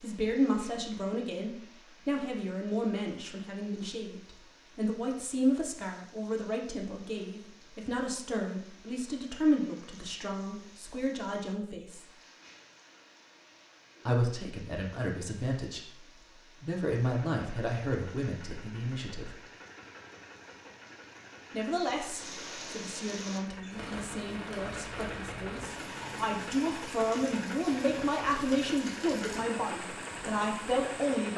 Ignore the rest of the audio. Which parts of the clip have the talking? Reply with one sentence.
You can hear the talking from 0.0 to 12.1 s, from 14.1 to 15.9 s, from 16.6 to 19.4 s and from 21.5 to 31.3 s.